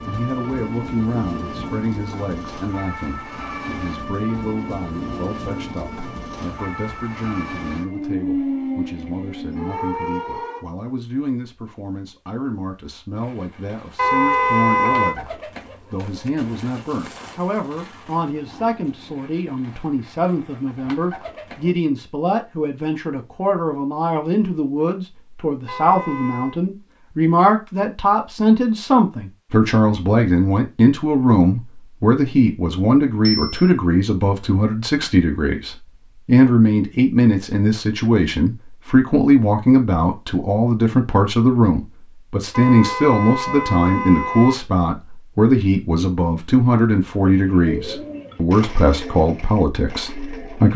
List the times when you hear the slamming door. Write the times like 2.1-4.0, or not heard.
not heard.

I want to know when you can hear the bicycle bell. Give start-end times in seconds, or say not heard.
33.2-33.7.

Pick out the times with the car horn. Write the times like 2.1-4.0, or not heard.
13.9-15.2, 25.6-26.6, 42.5-44.5.